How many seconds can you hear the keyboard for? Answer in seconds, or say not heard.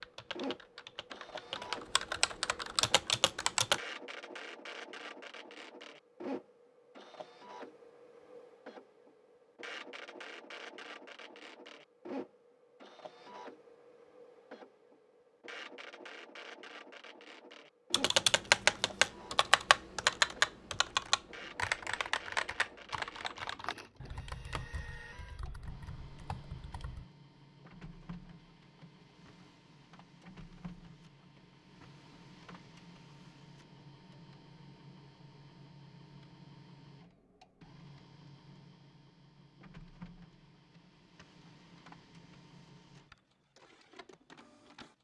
13 s.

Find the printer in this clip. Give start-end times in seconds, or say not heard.
0.0-44.9.